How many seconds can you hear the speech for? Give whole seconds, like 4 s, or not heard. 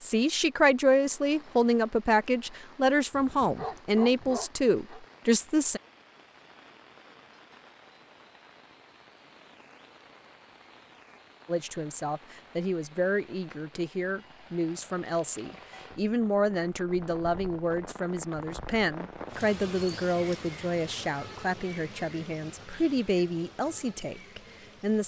19 s.